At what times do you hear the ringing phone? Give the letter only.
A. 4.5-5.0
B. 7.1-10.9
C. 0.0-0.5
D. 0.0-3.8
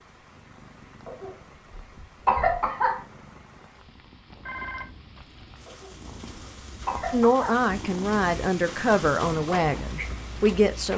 A.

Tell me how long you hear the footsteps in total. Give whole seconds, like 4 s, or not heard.
not heard.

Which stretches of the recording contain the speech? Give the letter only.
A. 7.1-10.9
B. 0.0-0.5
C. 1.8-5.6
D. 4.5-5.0
A.